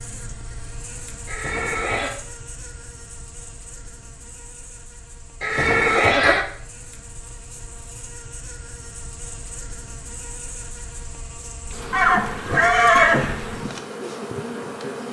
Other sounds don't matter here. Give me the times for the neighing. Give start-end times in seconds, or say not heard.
1.2-2.1, 5.4-6.5, 11.9-13.4.